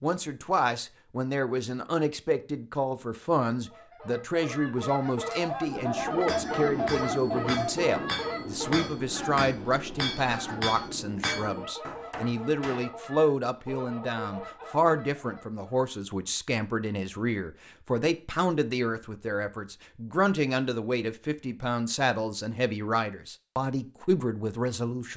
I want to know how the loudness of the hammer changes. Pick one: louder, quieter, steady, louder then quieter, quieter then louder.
steady.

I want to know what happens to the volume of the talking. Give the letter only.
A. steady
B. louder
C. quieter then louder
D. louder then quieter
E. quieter
A.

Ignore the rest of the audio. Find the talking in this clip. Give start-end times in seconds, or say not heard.
0.0-25.1.